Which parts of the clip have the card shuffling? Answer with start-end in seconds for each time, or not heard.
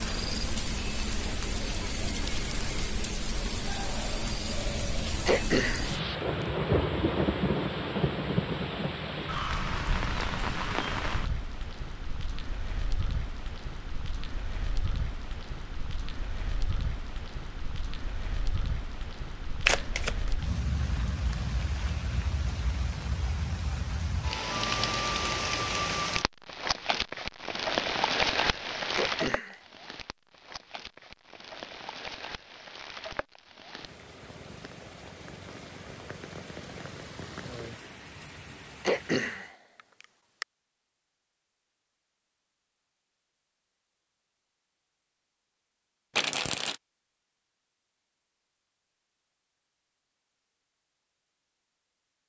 19.6-20.3, 46.1-46.8.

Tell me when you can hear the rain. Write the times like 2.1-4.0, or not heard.
0.0-39.5.